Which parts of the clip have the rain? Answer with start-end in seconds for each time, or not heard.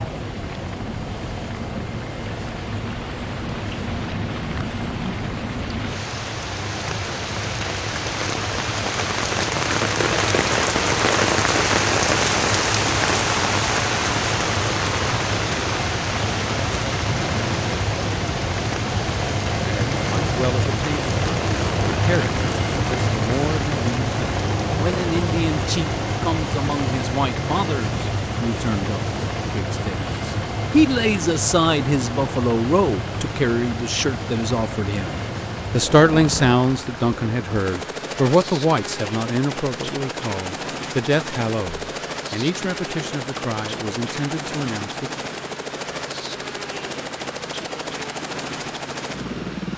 0.0-49.7.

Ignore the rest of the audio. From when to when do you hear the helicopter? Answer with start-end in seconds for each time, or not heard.
0.0-49.7.